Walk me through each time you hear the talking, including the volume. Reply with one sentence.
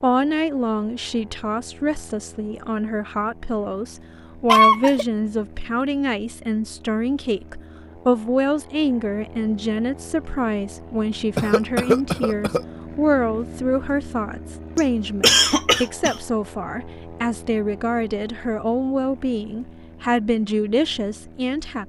You can hear the talking from 0.0 to 21.8 s, at a steady volume.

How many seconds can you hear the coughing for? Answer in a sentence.
The coughing can be heard for 3 seconds in total.